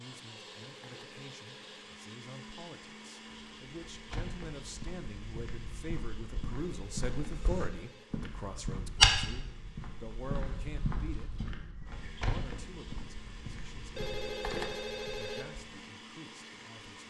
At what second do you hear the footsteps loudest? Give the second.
9 s.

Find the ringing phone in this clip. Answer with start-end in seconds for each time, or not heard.
0.3-1.9, 6.5-8.1, 13.9-15.4.